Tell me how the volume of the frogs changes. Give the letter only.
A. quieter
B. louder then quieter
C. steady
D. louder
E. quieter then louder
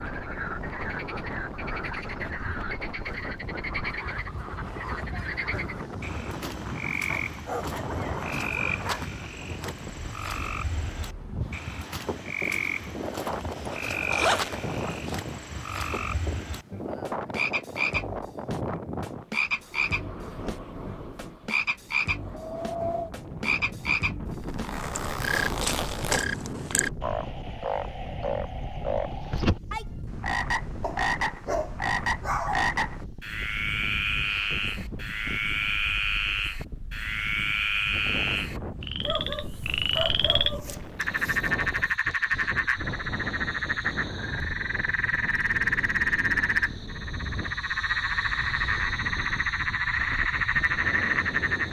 D.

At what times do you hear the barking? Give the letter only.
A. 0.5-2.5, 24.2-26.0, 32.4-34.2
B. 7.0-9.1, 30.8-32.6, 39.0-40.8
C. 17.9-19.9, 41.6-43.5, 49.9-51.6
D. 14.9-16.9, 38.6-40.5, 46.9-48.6
B.